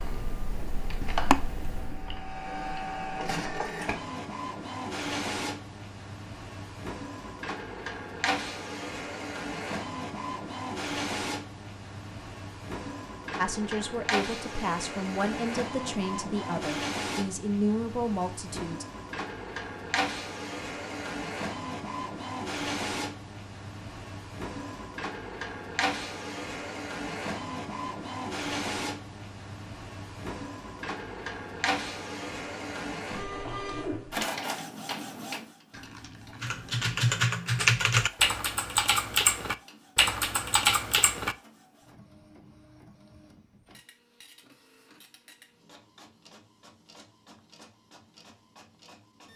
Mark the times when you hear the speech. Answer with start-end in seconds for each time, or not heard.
13.3-18.9.